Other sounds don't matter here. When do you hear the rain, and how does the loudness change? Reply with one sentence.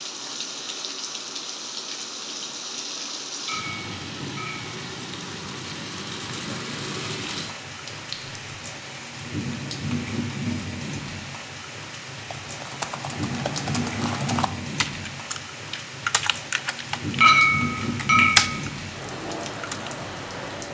The rain can be heard from 0.0 to 20.6 s, at a steady volume.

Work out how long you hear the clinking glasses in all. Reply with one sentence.
The clinking glasses can be heard for 3 seconds in total.